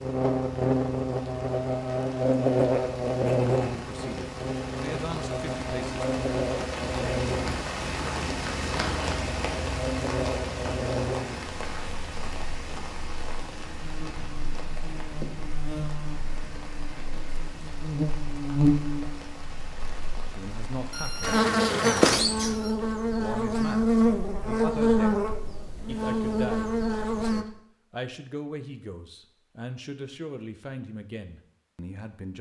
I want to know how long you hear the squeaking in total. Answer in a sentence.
The squeaking can be heard for 2 seconds in total.